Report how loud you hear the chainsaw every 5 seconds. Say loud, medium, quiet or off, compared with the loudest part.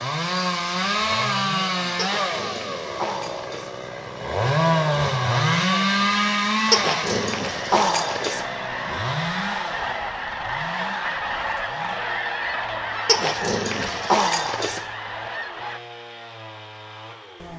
loud, loud, quiet, quiet.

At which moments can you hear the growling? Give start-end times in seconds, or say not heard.
1.9-3.7, 6.7-8.4, 13.1-14.8.